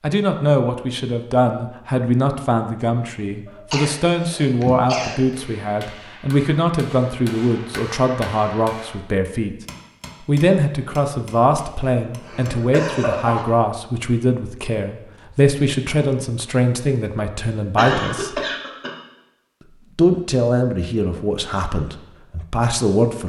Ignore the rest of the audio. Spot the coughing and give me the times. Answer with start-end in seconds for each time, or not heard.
3.5-5.5, 11.8-13.4, 17.8-18.9.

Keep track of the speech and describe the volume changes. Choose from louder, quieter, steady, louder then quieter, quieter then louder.
steady.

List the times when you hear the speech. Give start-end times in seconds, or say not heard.
0.0-9.6, 10.2-18.4, 19.9-23.2.